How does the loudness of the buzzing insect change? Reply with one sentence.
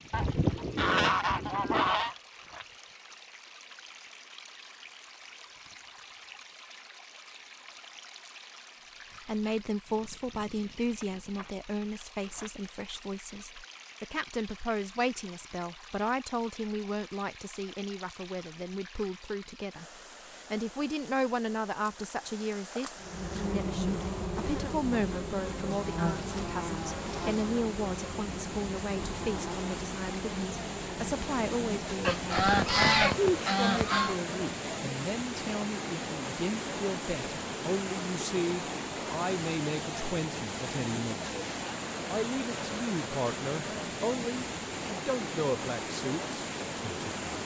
The volume of the buzzing insect goes down.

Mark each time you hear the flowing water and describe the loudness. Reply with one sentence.
The flowing water can be heard from 0.0 to 47.4 s, getting louder.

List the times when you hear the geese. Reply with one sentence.
You can hear the geese from 0.1 to 2.1 s and from 32.0 to 34.1 s.